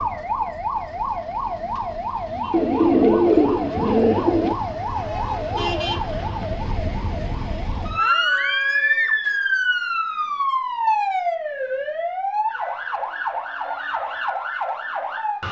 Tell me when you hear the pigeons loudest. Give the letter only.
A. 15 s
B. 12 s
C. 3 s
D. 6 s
C.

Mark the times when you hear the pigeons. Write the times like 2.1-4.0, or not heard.
2.5-4.5.